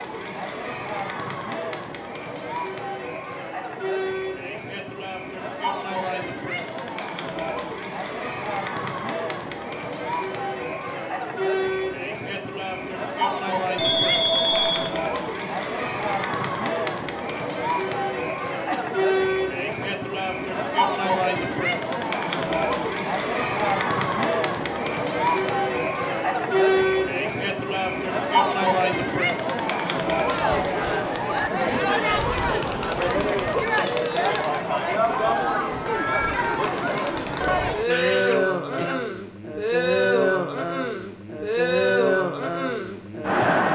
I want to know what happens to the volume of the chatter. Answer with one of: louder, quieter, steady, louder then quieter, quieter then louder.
louder.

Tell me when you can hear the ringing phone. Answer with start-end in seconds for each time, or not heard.
13.8-14.9.